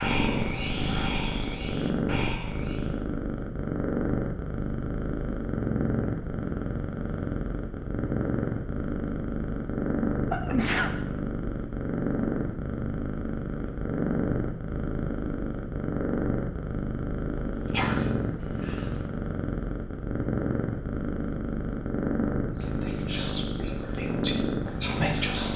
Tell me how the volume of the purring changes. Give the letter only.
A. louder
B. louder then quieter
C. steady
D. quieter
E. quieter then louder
C.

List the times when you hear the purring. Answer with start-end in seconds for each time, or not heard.
0.0-25.5.